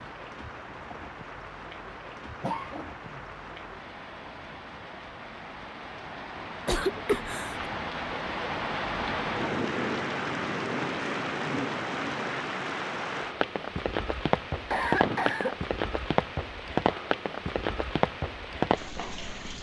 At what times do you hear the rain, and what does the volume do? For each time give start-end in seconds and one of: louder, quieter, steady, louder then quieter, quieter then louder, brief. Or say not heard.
0.0-19.5 louder.